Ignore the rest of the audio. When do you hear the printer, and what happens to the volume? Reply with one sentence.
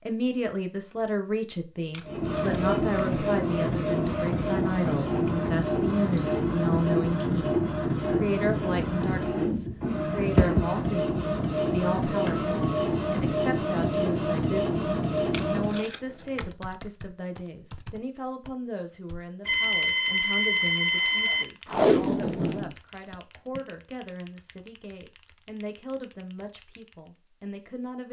The printer can be heard from 2.0 to 15.8 s, at a steady volume.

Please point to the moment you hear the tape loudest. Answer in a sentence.
The loudest moment of the tape is at 22 seconds.